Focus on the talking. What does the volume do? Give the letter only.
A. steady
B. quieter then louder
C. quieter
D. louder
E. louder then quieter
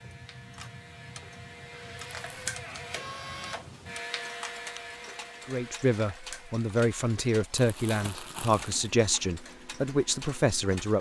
A.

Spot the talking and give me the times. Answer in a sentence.
You can hear the talking from 5.5 to 10.9 s.